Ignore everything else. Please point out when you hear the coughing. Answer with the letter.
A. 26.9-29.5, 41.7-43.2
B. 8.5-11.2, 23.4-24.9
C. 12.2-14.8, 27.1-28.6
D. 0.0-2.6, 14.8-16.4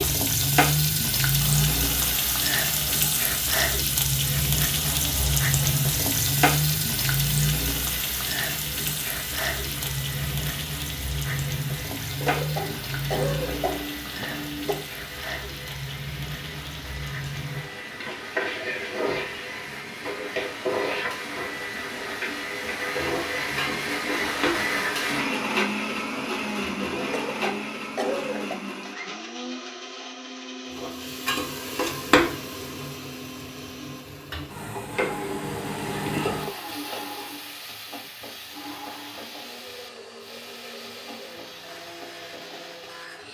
C.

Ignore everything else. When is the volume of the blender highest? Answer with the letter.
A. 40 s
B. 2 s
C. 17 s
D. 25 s
D.